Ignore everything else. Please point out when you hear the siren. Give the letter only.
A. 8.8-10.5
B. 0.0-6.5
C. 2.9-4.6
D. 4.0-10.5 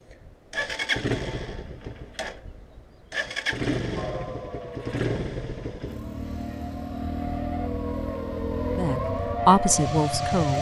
D.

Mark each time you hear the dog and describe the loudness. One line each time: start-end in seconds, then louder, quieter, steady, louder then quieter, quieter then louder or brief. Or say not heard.
not heard.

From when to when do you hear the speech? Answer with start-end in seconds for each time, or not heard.
8.8-10.5.